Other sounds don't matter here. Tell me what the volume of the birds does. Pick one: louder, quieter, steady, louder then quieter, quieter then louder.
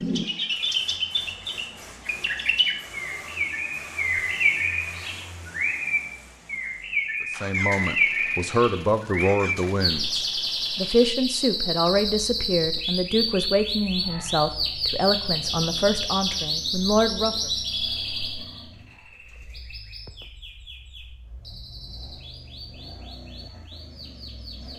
quieter.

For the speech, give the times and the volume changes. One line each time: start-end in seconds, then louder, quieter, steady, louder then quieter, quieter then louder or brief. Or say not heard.
7.3-17.5 steady.